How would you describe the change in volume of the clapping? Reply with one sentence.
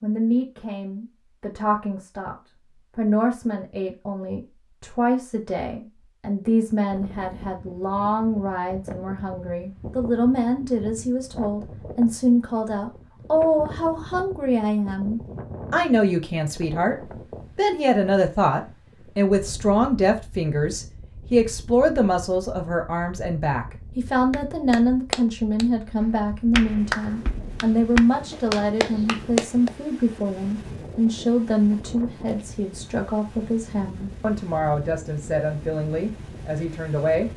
The volume of the clapping goes down, then up.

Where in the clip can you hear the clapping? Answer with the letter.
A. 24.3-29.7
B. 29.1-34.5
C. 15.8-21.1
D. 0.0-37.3
A.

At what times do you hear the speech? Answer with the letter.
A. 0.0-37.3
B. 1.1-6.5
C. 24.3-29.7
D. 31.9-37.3
A.